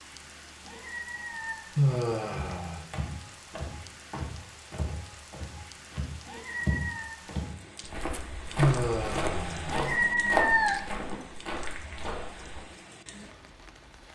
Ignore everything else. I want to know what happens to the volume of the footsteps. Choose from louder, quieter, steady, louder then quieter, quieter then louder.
louder.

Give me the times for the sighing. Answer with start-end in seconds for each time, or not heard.
1.8-2.9, 8.6-10.0.